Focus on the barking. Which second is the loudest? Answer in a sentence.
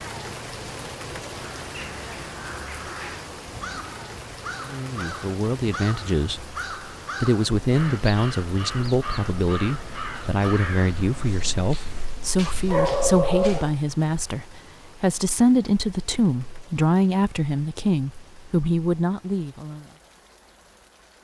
The volume of the barking peaks at 13 seconds.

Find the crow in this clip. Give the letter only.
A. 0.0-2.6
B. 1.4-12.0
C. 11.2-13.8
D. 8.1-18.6
B.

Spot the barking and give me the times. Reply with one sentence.
You can hear the barking from 11.2 to 13.8 s.